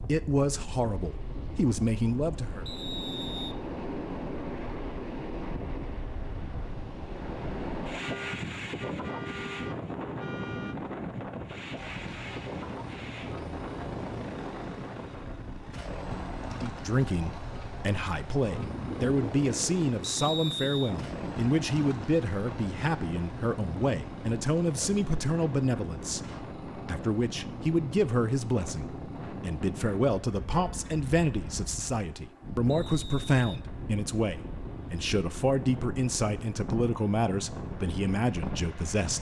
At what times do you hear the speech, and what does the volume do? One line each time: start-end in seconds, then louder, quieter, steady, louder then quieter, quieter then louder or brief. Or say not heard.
0.0-2.6 brief
16.6-39.1 steady.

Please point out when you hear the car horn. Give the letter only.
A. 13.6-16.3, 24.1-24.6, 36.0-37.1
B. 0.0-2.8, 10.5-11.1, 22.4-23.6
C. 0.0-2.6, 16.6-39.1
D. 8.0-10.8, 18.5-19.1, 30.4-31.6
D.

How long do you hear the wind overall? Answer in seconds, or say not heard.
39 s.